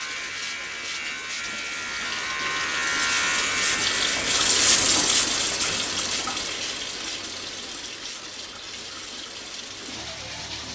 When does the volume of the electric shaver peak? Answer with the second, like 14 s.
3 s.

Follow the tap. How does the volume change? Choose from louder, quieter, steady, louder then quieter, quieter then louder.
louder then quieter.